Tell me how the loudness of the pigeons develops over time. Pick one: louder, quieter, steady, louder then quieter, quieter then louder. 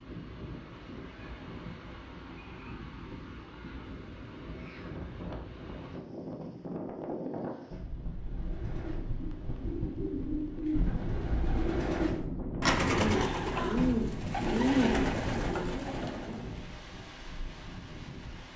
louder.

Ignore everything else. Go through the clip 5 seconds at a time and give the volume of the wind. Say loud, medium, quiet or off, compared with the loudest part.
medium, loud, loud, medium.